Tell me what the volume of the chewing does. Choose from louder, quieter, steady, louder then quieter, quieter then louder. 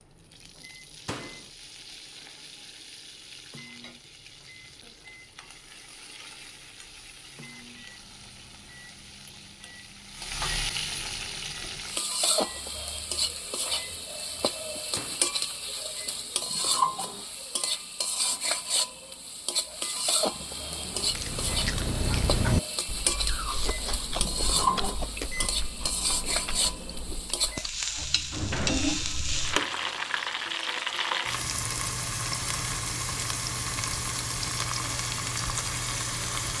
quieter.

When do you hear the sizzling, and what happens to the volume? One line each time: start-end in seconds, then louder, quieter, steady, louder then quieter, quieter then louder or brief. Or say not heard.
0.0-36.5 louder.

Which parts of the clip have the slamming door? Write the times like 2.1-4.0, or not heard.
1.1-1.5, 14.9-15.3, 27.9-29.6.